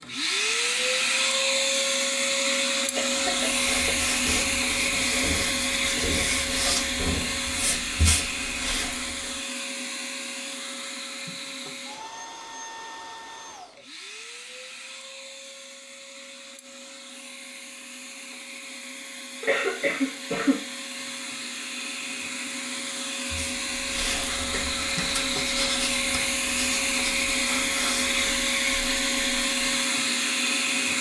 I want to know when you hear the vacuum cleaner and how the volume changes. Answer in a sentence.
You can hear the vacuum cleaner from 0.0 to 30.9 s, getting quieter then louder.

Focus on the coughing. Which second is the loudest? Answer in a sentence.
The volume of the coughing peaks at 20 seconds.